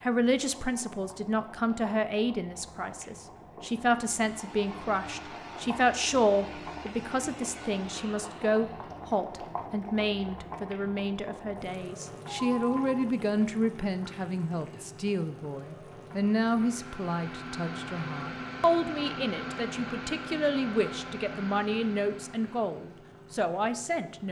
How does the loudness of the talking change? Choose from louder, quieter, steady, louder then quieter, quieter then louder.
steady.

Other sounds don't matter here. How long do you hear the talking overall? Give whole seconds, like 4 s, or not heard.
24 s.